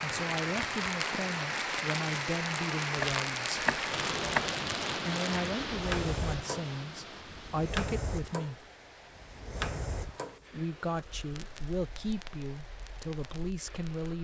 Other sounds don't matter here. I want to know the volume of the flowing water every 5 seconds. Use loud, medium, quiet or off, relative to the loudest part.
loud, medium, quiet.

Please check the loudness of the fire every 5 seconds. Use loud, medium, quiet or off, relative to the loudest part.
loud, loud, quiet.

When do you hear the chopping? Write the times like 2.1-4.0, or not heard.
2.9-4.5.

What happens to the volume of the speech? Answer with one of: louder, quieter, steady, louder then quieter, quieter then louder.
steady.